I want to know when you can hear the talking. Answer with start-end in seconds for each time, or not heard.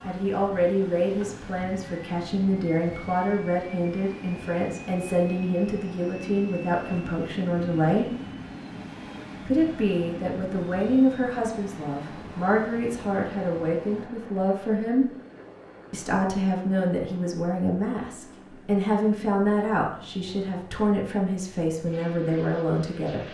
0.1-8.1, 9.4-15.1, 15.9-23.2.